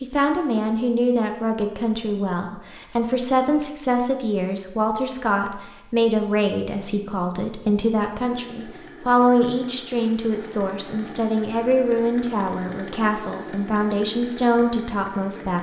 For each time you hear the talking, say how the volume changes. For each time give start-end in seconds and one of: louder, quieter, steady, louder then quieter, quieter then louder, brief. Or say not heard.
0.0-15.5 steady.